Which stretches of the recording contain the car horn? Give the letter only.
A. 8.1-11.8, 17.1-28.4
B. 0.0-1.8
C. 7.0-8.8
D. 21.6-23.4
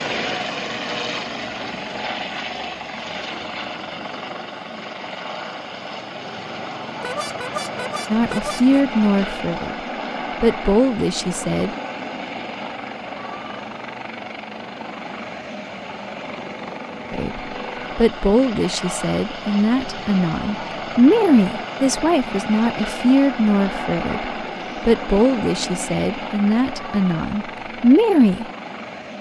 C.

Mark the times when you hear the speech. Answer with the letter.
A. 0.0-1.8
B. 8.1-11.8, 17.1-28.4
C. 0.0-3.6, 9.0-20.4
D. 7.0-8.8
B.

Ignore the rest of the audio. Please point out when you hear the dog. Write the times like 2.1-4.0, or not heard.
not heard.